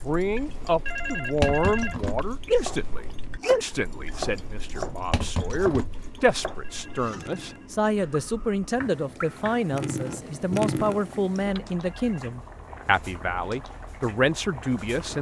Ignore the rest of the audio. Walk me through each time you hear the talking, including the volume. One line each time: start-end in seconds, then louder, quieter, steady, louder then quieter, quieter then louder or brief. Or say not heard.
0.0-15.1 steady.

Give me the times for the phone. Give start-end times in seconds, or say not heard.
0.8-2.2, 6.6-7.7, 11.8-12.3.